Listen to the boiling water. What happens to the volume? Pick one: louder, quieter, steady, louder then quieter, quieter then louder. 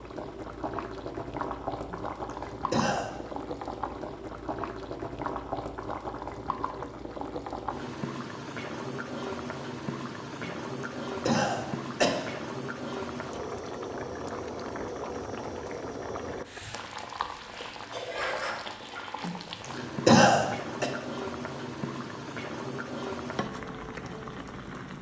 steady.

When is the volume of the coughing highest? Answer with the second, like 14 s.
20 s.